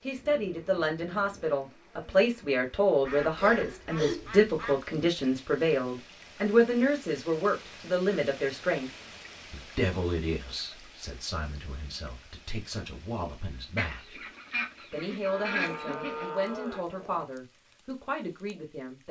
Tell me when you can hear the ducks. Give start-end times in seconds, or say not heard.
3.0-4.8, 13.8-16.3.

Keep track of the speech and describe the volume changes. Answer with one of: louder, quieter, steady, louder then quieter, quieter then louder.
quieter.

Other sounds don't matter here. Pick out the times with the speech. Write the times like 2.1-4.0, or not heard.
0.0-8.9, 9.5-14.2, 14.9-19.0.